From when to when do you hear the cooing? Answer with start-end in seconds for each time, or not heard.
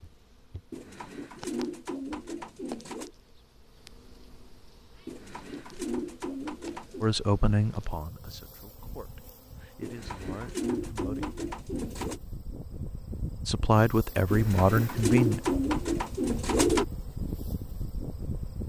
0.7-3.1, 5.0-7.0, 9.8-12.2, 14.3-16.9.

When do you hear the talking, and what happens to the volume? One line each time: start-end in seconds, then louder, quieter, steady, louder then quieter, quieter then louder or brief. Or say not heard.
7.0-11.3 quieter then louder
13.4-15.4 brief.